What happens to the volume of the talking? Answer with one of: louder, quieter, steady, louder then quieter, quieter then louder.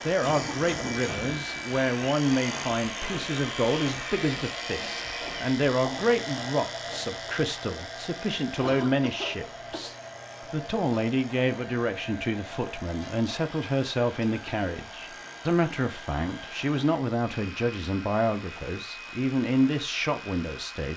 steady.